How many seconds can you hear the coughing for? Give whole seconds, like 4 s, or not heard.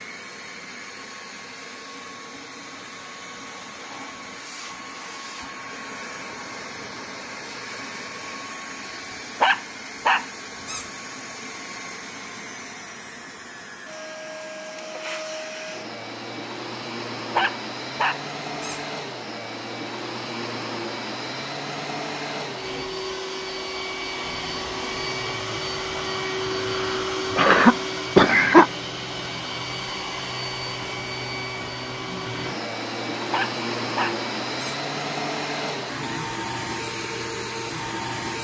2 s.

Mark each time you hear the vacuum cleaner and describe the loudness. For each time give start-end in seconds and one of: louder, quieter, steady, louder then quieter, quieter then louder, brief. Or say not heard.
0.0-38.3 louder.